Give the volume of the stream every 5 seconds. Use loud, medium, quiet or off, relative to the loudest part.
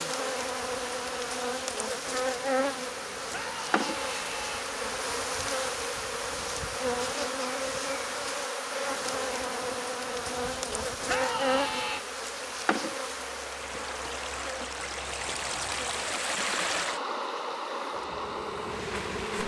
medium, medium, medium, loud.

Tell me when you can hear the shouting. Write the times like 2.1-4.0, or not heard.
3.3-4.6, 11.1-12.0.